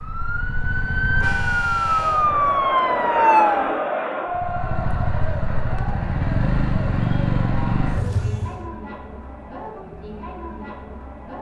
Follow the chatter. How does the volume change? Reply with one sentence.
The loudness of the chatter goes down.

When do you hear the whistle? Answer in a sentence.
The whistle can't be heard in this clip.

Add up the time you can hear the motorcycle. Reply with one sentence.
You can hear the motorcycle for 7 seconds altogether.